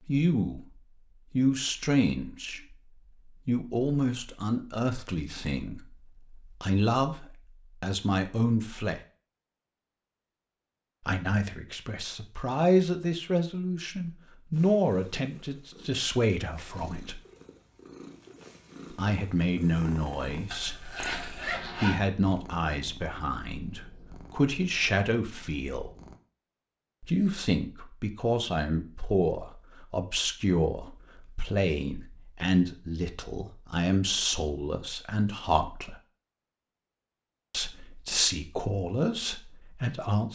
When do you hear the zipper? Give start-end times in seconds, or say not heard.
20.5-21.9.